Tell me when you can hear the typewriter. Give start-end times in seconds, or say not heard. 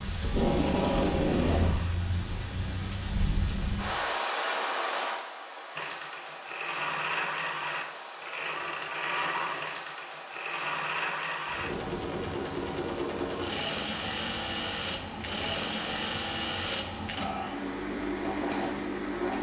not heard.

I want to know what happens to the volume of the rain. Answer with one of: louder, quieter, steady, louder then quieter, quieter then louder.
quieter.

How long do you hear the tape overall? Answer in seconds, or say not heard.
2 s.